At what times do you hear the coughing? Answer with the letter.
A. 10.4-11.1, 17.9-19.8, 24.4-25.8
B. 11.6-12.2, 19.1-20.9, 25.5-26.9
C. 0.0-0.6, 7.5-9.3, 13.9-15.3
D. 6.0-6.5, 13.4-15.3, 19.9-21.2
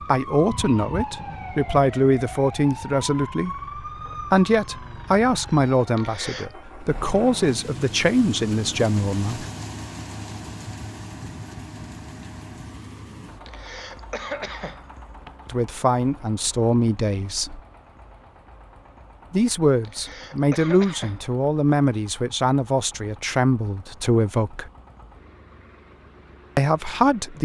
D.